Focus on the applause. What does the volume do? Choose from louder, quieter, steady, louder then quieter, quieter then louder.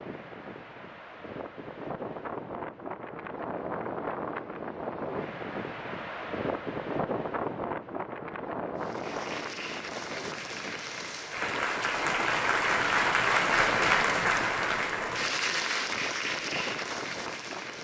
louder then quieter.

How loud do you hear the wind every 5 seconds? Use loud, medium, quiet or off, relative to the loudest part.
loud, loud, medium, medium.